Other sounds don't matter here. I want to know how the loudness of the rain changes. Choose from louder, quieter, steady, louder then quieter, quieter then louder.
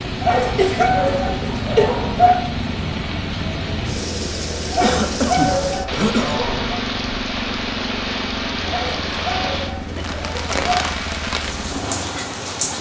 steady.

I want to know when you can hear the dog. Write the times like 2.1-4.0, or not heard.
0.2-2.5, 4.7-6.8, 8.7-10.7.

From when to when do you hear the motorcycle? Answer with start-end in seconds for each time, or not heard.
0.0-12.7.